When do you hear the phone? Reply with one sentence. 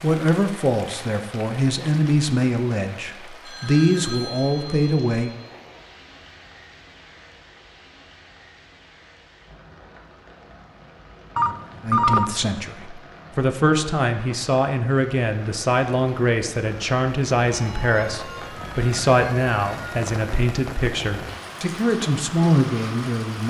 You can hear the phone from 3.5 to 5.7 s, from 11.3 to 12.2 s and from 17.5 to 20.0 s.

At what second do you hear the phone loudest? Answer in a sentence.
The volume of the phone peaks at 12 seconds.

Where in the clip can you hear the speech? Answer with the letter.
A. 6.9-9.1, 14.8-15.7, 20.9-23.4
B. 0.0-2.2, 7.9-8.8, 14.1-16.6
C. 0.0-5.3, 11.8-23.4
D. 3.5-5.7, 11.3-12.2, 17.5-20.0
C.